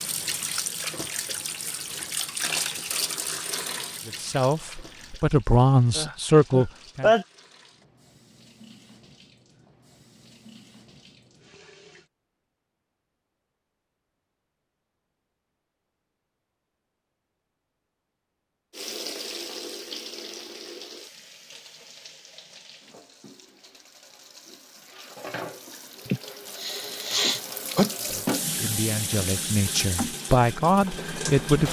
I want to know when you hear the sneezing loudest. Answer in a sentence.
The loudest moment of the sneezing is at 7 seconds.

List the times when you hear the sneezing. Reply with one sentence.
You can hear the sneezing from 6.0 to 7.2 s and from 26.1 to 27.9 s.